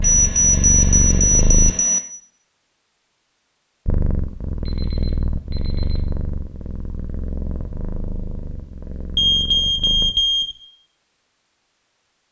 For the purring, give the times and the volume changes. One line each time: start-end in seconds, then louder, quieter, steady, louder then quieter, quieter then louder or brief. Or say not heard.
0.0-1.8 brief
3.9-10.2 quieter.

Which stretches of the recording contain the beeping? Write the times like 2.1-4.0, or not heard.
0.0-2.0, 4.7-6.0, 9.2-10.6.